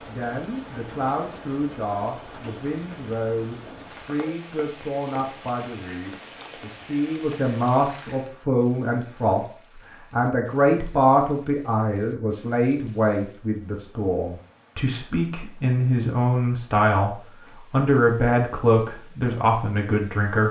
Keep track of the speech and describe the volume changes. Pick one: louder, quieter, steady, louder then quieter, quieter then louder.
louder.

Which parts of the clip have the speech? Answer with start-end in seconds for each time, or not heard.
0.1-9.4, 10.1-20.4.